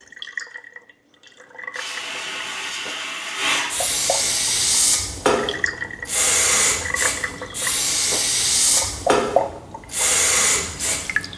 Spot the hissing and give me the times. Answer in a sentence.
The hissing can be heard from 1.7 to 11.3 s.